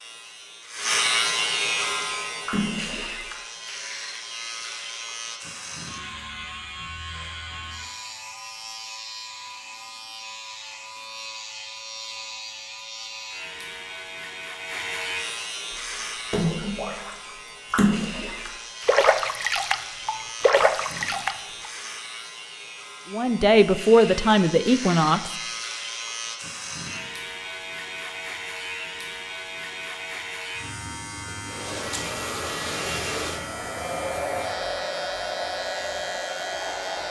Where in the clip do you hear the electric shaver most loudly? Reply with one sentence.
The volume of the electric shaver peaks at 1 second.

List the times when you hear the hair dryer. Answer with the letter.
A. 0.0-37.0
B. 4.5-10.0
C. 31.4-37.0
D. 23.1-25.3
C.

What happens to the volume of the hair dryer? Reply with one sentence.
The volume of the hair dryer stays about the same.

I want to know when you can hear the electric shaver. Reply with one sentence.
The electric shaver can be heard from 0.0 to 37.0 s.